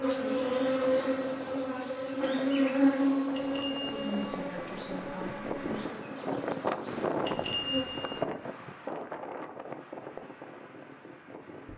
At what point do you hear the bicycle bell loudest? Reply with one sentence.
The loudest moment of the bicycle bell is at 8 seconds.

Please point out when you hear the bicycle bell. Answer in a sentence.
You can hear the bicycle bell from 3.3 to 4.3 s and from 7.2 to 8.2 s.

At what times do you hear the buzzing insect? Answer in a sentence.
You can hear the buzzing insect from 0.0 to 8.1 s.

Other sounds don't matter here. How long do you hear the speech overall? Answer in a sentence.
The speech can be heard for 2 seconds in total.